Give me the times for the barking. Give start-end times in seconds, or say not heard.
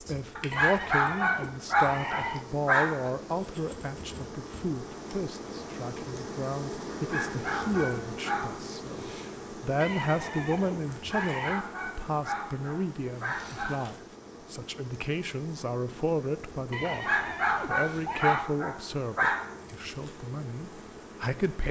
0.3-3.1, 6.9-8.5, 10.9-13.8, 16.9-19.4.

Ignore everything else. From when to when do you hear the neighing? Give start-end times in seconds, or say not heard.
0.5-2.5, 9.8-11.7, 16.7-18.5.